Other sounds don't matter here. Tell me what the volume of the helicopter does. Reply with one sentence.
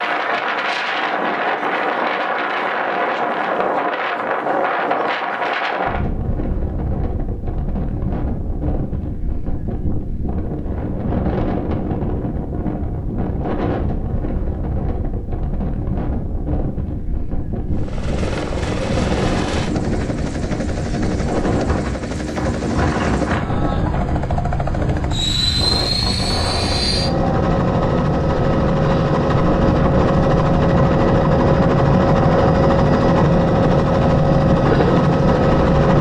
The volume of the helicopter goes up.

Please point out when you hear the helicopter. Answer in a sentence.
You can hear the helicopter from 17.7 to 35.9 s.